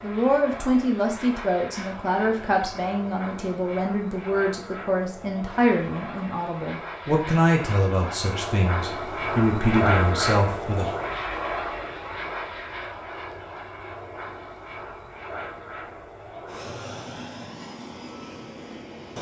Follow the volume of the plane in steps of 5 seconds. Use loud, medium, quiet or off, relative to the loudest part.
medium, loud, loud, medium.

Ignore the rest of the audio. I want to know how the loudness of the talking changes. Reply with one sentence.
The loudness of the talking stays about the same.